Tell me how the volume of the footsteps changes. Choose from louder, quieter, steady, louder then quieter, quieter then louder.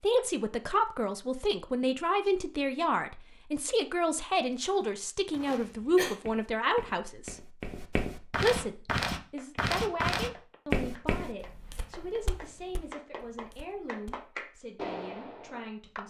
louder then quieter.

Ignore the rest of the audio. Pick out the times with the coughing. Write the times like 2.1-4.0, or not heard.
5.6-6.2.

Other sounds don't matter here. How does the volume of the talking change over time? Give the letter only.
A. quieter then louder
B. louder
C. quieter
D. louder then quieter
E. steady
C.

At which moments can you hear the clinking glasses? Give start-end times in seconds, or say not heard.
not heard.